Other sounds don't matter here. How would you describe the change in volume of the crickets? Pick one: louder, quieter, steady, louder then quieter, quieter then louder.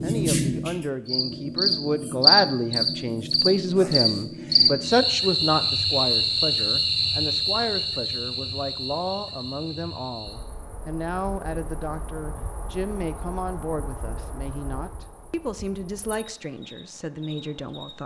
quieter.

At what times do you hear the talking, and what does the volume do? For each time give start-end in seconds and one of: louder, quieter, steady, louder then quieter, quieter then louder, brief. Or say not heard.
0.0-18.0 quieter.